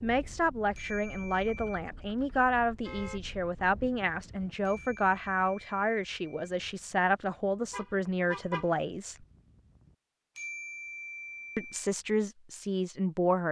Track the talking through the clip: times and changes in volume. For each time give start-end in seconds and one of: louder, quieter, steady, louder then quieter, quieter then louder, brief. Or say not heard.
0.0-9.2 steady
11.6-13.4 brief.